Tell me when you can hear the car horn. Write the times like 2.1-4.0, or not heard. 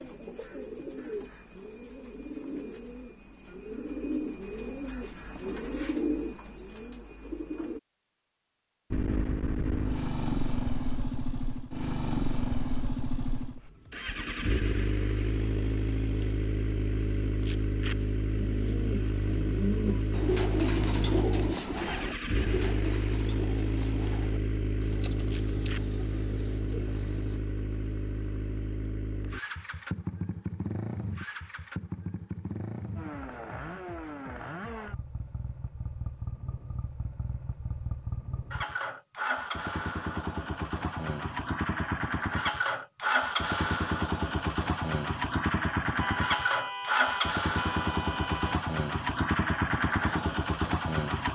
46.0-48.6.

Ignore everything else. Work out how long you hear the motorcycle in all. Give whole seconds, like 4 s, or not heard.
42 s.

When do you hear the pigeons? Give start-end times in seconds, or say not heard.
0.0-7.8, 18.4-27.4.